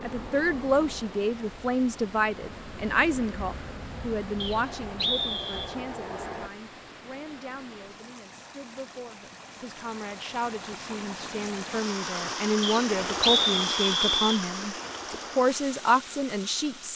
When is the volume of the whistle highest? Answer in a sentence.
The volume of the whistle peaks at 13 seconds.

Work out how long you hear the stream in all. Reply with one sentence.
You can hear the stream for 17 seconds altogether.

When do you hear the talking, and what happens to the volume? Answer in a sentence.
The talking can be heard from 0.0 to 16.9 s, getting quieter then louder.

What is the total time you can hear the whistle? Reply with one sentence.
The whistle can be heard for 3 seconds in total.